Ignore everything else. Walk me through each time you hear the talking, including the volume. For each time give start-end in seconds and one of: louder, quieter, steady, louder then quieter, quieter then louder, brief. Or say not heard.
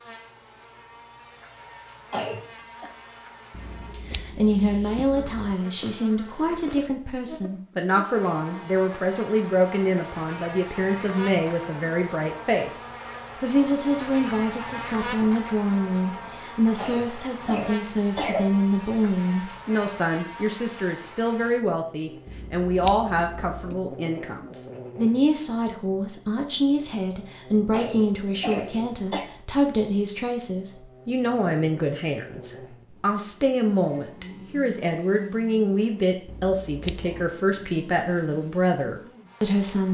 4.0-39.8 steady.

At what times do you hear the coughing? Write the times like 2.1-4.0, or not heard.
2.1-2.9, 16.8-18.5, 27.7-29.2.